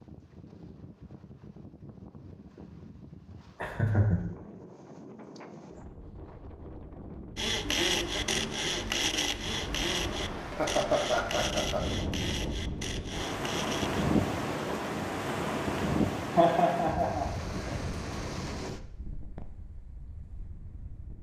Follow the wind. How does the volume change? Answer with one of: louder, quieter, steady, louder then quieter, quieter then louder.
louder then quieter.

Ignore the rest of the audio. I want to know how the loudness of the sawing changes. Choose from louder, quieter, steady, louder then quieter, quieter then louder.
quieter.